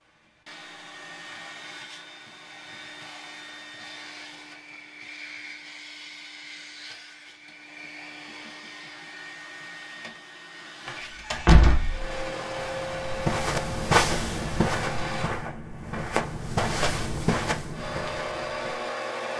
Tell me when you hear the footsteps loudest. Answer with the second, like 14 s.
14 s.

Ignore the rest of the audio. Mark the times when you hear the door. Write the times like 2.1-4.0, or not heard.
10.8-12.1.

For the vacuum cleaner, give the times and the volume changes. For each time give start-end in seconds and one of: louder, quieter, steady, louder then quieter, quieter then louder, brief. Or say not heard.
0.0-15.3 louder
17.7-19.3 brief.